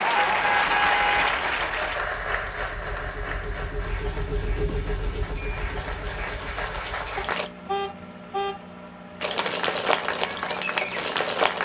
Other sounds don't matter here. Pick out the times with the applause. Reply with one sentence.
You can hear the applause from 0.0 to 7.5 s and from 9.2 to 11.6 s.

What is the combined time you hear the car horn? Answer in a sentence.
The car horn can be heard for 3 seconds in total.